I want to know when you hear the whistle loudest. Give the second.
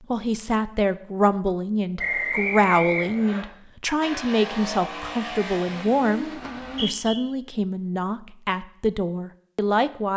2 s.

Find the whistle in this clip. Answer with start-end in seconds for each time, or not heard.
1.9-3.5, 6.6-7.2.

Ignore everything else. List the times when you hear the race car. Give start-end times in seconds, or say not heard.
4.0-6.9.